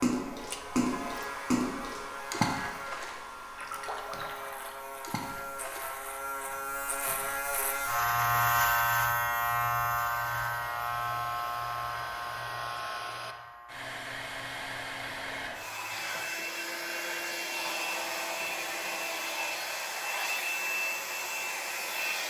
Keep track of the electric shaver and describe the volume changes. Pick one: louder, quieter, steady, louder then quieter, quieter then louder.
louder then quieter.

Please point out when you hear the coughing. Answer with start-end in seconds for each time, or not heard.
not heard.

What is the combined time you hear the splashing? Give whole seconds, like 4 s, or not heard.
6 s.